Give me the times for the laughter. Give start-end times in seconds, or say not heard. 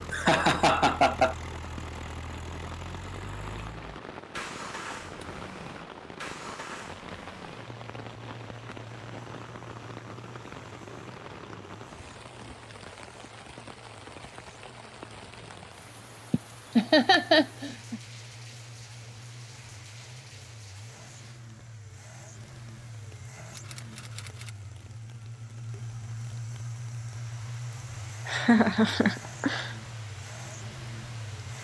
0.1-1.4, 16.3-18.0, 28.2-29.8.